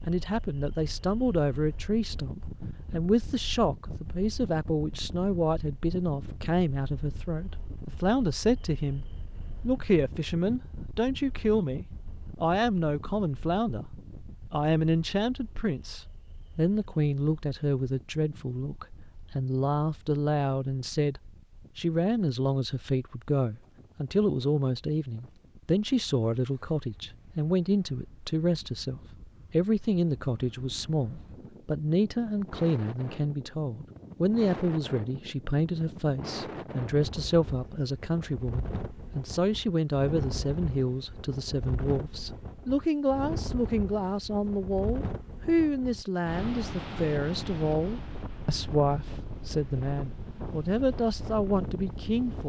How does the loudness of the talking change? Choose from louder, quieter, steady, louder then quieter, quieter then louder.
steady.